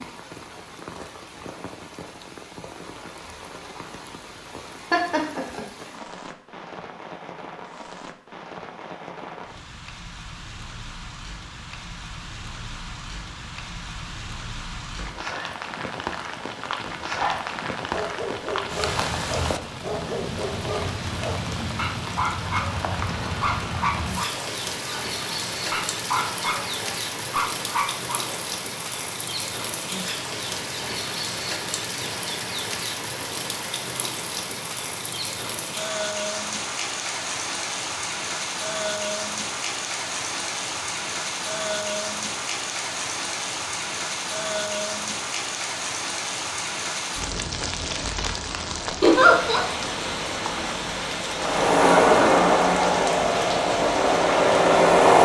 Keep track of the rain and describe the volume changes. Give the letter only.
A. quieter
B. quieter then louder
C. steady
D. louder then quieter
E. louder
E.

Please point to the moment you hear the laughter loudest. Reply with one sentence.
The loudest moment of the laughter is at 49 seconds.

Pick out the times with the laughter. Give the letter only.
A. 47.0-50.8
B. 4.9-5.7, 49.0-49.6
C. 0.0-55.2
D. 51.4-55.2
B.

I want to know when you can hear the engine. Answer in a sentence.
The engine can be heard from 51.4 to 55.2 s.